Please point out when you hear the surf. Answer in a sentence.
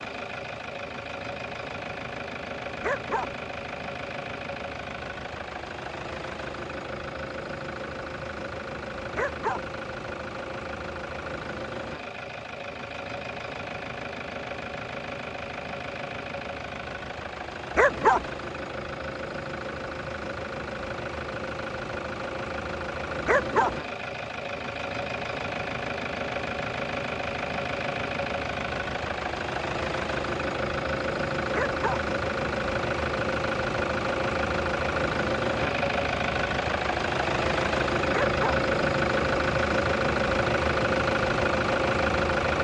You can't hear the surf here.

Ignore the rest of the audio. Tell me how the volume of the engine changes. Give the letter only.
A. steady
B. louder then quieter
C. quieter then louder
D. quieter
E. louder
E.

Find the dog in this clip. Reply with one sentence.
The dog can be heard from 2.8 to 3.4 s, from 9.2 to 9.7 s, from 17.8 to 18.3 s, from 23.2 to 23.8 s, from 31.5 to 32.0 s and from 38.1 to 38.6 s.